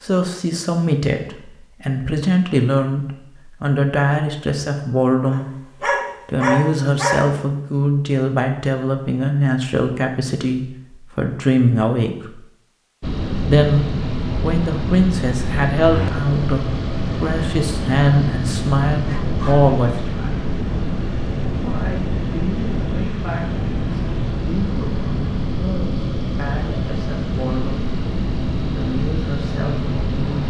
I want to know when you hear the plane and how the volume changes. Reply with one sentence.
The plane can be heard from 13.0 to 30.4 s, at a steady volume.